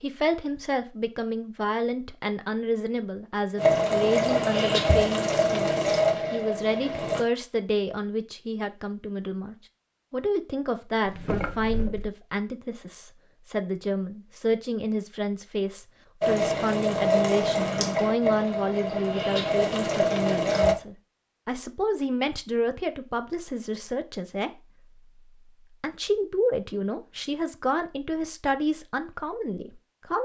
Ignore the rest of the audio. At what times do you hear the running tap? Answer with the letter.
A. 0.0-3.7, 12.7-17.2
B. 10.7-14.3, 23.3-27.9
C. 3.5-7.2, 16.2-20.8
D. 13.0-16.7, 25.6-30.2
C.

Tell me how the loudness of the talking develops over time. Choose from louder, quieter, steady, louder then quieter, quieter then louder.
steady.